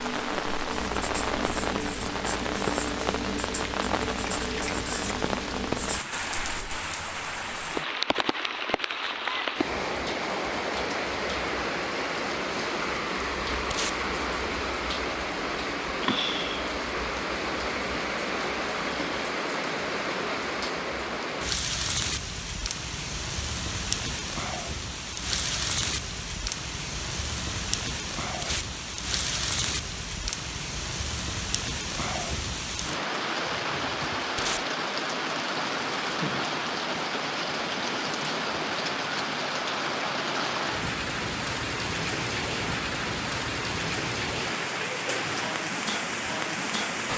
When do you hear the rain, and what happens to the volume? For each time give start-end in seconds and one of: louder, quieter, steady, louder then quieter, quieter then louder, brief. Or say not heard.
0.0-47.1 steady.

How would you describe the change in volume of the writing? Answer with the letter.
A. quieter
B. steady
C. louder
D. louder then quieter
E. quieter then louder
B.